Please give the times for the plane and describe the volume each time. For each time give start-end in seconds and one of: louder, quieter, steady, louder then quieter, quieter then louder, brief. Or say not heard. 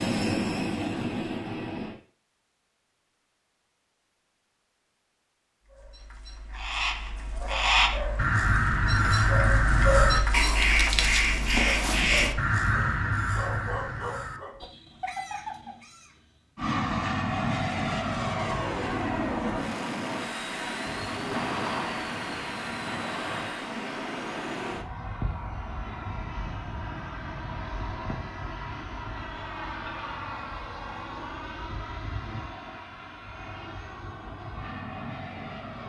0.0-2.0 brief
16.6-35.8 quieter.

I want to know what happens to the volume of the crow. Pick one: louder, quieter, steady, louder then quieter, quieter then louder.
quieter.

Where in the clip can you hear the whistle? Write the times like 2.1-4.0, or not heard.
not heard.